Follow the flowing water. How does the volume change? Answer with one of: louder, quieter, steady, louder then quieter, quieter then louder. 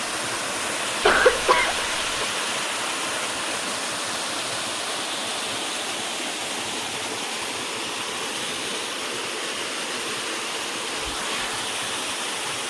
steady.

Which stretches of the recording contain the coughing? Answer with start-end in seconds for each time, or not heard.
1.0-2.2.